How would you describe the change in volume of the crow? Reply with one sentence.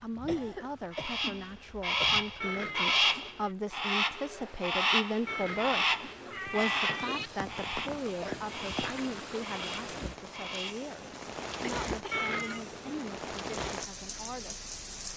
The loudness of the crow goes down.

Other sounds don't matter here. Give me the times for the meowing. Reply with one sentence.
The meowing can be heard from 2.4 to 3.5 s, from 5.2 to 7.3 s and from 12.1 to 13.2 s.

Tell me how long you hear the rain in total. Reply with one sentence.
You can hear the rain for 15 seconds altogether.